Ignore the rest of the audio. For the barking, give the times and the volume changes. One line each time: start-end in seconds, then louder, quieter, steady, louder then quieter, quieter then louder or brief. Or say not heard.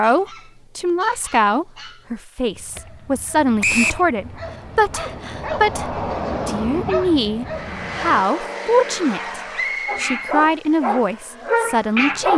0.0-8.2 louder
9.8-12.3 brief.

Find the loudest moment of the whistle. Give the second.
4 s.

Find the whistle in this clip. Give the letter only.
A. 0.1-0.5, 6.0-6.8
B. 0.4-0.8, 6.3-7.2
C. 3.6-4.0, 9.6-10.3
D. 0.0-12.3
C.